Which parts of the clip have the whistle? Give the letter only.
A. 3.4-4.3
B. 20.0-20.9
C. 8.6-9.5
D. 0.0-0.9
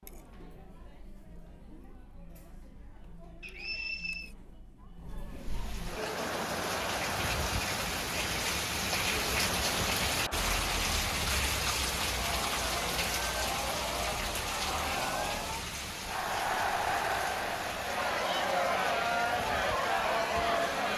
A.